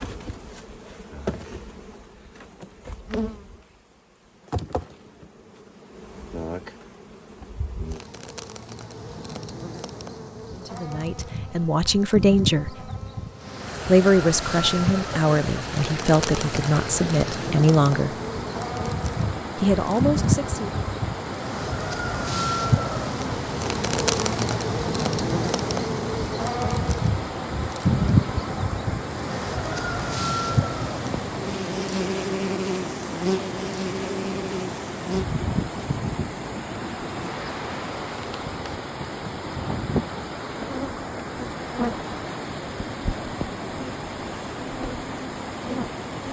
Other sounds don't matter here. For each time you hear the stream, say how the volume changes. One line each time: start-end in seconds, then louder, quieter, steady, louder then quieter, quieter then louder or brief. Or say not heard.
13.3-46.2 steady.